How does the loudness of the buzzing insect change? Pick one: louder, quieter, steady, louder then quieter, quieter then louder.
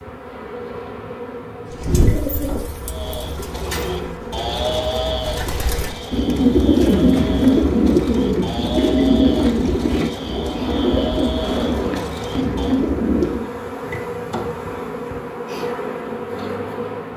louder.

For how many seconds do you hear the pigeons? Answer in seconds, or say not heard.
12 s.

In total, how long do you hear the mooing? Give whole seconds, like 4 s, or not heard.
10 s.